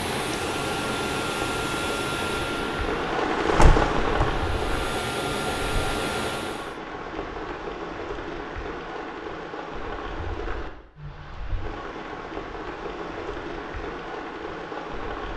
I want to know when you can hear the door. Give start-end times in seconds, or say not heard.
3.5-4.7.